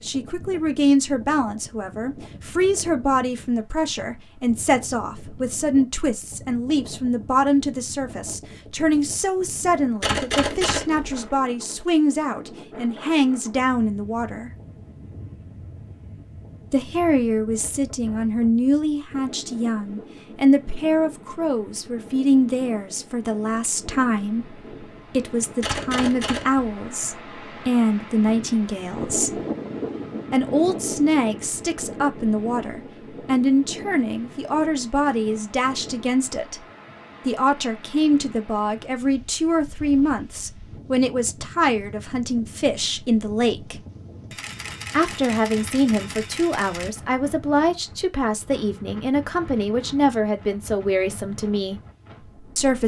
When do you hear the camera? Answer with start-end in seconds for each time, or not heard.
10.0-11.2, 25.6-26.6, 44.3-46.9.